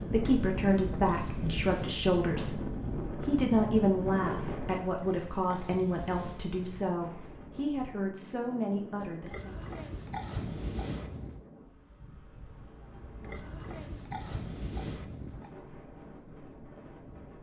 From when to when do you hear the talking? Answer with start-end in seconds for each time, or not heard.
0.1-9.6.